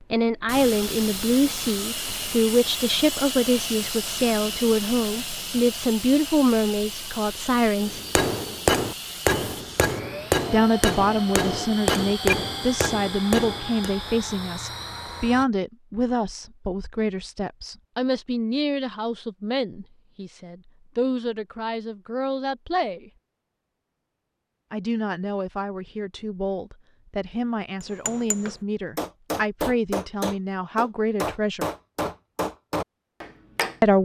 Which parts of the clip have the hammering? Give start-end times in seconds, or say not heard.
7.8-13.9, 27.8-33.8.